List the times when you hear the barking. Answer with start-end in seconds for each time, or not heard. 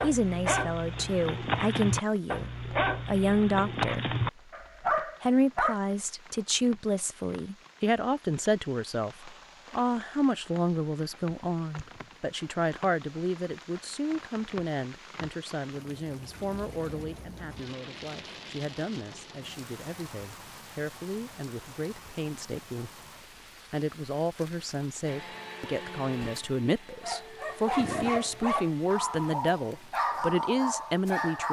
0.0-5.8, 27.0-31.4.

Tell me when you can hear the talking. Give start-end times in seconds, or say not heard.
0.0-4.1, 5.0-22.9, 23.7-31.4.